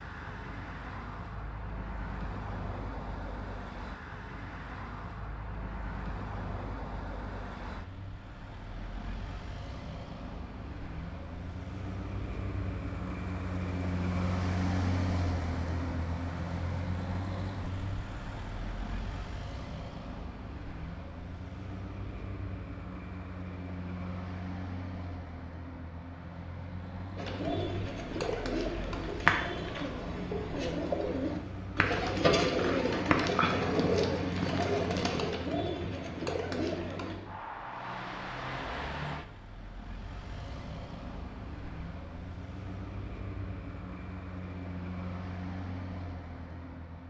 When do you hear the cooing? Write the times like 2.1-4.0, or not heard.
27.1-37.2.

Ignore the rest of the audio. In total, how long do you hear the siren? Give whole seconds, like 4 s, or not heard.
not heard.